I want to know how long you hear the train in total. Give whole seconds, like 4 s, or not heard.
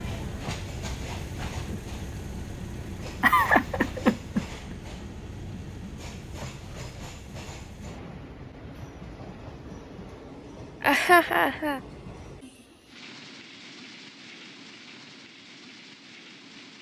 17 s.